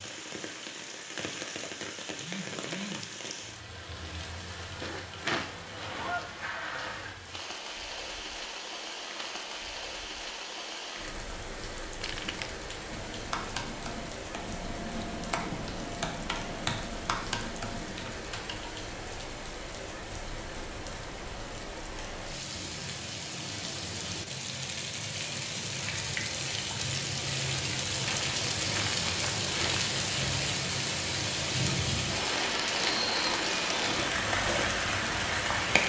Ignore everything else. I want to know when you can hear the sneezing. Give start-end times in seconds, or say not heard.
not heard.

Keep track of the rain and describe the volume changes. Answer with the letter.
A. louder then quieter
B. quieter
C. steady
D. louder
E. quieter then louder
D.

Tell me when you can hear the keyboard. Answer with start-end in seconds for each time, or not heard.
12.9-18.9.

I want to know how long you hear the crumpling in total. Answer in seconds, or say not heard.
3 s.